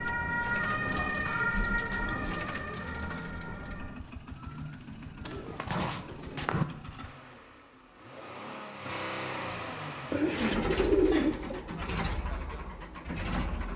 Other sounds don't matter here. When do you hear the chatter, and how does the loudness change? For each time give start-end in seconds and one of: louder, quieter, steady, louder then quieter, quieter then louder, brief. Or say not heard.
not heard.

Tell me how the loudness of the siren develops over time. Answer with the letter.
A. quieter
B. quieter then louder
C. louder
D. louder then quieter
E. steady
A.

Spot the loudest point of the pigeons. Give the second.
11 s.